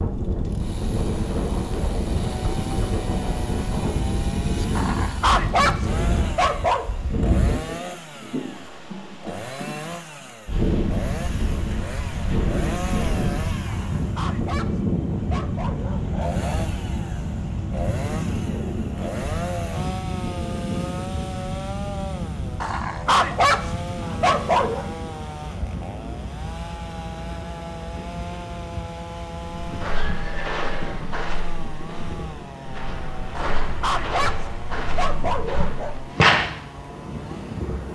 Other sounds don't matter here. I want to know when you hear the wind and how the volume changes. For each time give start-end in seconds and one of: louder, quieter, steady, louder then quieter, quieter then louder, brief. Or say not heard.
0.0-37.8 quieter.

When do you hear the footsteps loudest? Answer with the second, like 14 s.
36 s.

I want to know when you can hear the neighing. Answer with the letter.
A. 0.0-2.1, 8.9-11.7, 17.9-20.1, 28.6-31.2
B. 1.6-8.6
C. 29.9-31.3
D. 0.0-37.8
C.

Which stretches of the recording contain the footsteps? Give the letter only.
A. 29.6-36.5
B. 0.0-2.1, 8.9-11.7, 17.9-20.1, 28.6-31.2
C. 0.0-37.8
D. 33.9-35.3
A.